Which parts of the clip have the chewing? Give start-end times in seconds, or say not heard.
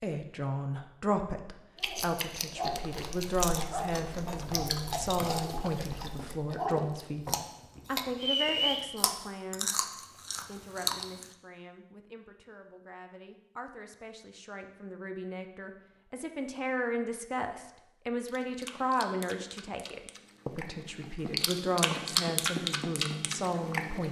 1.8-11.2, 18.2-24.0.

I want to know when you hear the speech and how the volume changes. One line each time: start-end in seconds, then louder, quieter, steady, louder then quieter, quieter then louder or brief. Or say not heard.
0.0-24.0 quieter then louder.